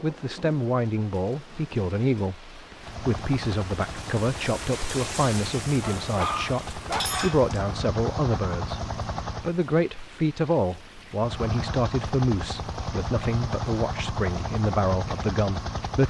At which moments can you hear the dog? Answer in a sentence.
You can hear the dog from 5.8 to 7.5 s.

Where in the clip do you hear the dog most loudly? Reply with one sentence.
The loudest moment of the dog is at 7 seconds.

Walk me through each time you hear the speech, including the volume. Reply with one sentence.
The speech can be heard from 0.0 to 16.0 s, at a steady volume.